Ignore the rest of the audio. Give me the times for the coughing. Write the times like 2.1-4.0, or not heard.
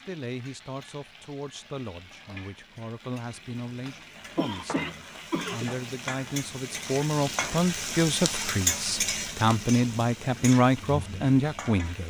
4.3-5.8.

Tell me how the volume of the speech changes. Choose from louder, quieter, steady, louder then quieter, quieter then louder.
louder.